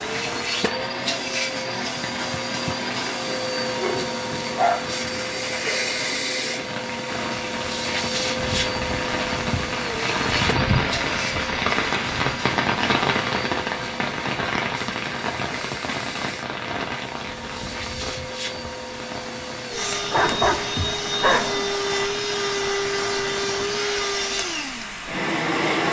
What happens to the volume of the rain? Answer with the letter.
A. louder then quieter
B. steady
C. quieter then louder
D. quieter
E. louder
A.